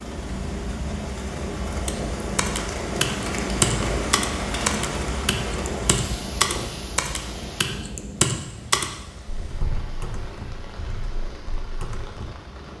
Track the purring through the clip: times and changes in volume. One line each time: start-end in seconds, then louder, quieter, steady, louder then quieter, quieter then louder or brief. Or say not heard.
0.0-12.7 quieter.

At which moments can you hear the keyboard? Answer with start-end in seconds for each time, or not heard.
1.9-12.3.